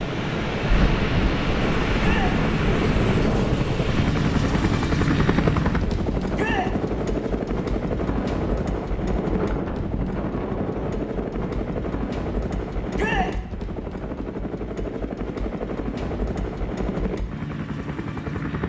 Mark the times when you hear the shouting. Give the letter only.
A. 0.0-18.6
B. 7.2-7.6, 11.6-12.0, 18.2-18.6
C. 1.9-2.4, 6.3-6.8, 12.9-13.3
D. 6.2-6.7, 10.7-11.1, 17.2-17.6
C.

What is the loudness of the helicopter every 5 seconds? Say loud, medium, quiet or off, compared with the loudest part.
loud, loud, medium, medium.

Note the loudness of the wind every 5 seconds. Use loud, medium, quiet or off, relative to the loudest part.
loud, loud, loud, off.